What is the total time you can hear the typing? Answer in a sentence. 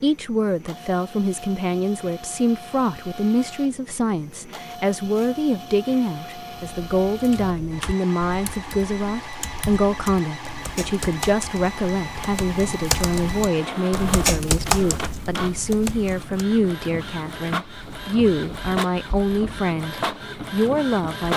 You can hear the typing for 10 seconds altogether.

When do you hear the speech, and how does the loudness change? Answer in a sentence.
You can hear the speech from 0.0 to 21.3 s, at a steady volume.